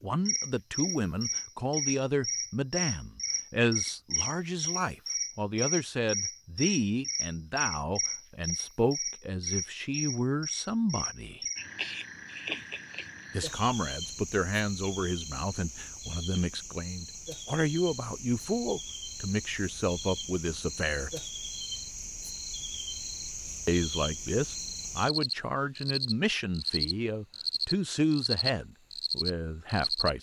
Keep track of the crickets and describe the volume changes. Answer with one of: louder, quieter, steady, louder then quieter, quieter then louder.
quieter then louder.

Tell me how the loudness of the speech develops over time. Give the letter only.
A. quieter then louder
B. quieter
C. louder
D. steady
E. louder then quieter
D.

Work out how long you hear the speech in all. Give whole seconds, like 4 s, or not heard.
26 s.